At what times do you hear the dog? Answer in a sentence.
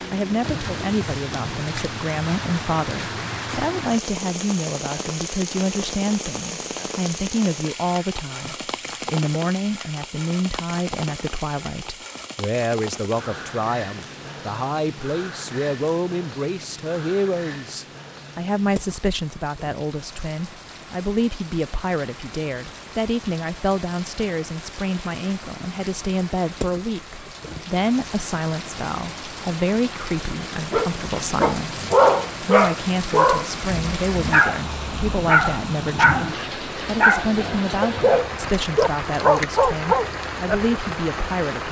The dog can be heard from 30.7 to 40.8 s.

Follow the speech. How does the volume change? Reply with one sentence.
The volume of the speech stays about the same.